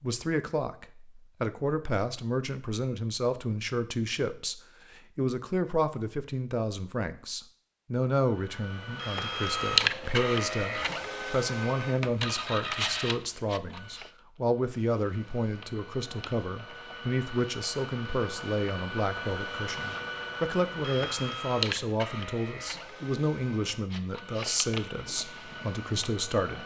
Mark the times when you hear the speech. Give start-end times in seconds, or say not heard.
0.0-26.6.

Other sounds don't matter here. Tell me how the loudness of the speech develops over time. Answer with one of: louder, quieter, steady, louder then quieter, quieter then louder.
steady.